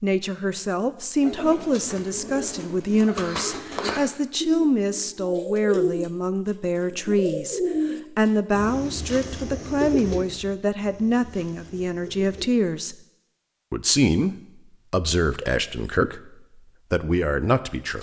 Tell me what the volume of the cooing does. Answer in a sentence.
The loudness of the cooing goes up, then down.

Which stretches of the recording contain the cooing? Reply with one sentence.
The cooing can be heard from 1.2 to 6.1 s and from 6.8 to 12.5 s.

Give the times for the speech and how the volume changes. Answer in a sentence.
You can hear the speech from 0.0 to 12.9 s, at a steady volume; and from 13.7 to 17.9 s, getting quieter then louder.